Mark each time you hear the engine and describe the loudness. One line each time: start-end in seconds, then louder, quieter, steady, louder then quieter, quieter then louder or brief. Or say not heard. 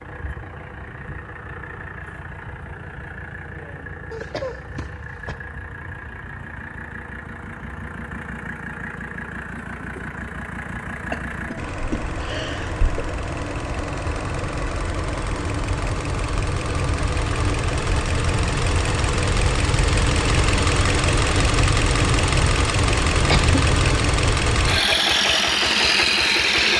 0.0-26.7 louder.